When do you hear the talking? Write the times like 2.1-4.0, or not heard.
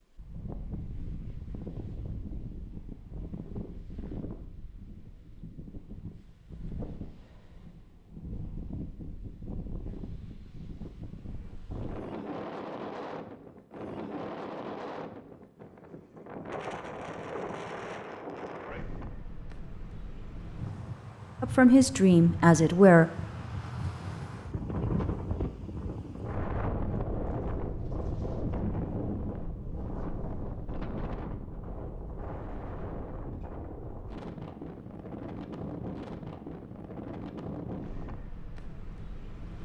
21.4-23.1.